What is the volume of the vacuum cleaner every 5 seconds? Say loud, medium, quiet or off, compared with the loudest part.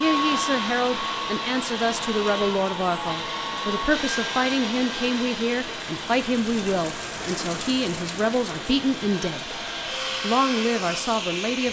loud, medium, loud.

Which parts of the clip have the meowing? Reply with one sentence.
You can't hear the meowing here.